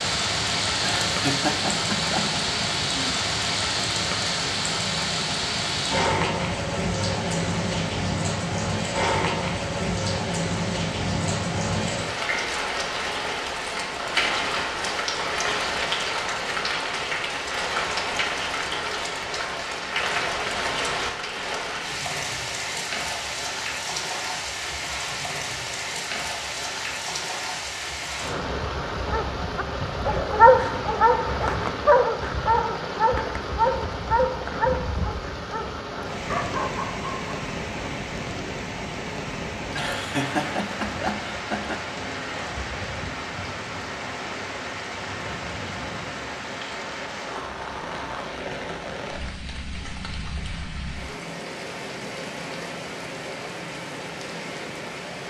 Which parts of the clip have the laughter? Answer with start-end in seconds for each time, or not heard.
0.8-2.4, 39.7-41.8.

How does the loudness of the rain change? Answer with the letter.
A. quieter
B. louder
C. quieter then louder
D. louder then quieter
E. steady
A.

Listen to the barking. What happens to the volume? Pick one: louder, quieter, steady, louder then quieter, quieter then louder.
quieter.